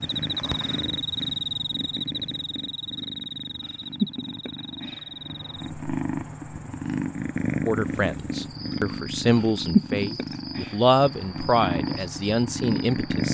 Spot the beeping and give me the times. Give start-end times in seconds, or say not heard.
not heard.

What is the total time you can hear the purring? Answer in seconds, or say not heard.
13 s.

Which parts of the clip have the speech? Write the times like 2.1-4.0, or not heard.
7.7-13.2.